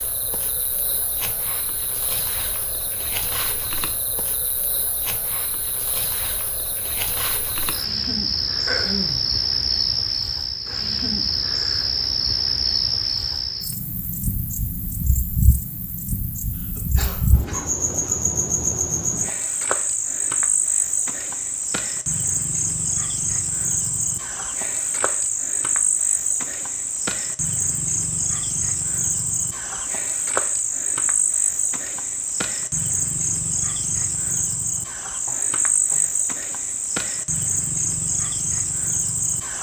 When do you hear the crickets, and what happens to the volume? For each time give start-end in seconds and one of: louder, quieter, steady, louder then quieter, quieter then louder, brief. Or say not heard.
0.0-39.5 louder.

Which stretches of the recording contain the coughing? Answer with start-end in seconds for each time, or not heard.
8.7-9.3, 16.6-18.1, 34.8-36.1.